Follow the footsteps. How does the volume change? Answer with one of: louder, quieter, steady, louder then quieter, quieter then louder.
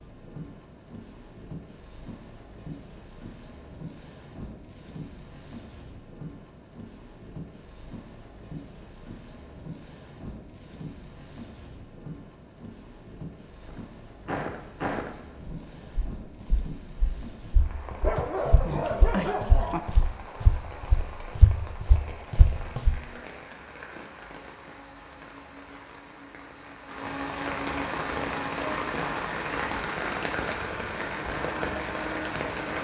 quieter then louder.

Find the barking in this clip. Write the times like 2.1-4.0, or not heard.
18.0-19.8.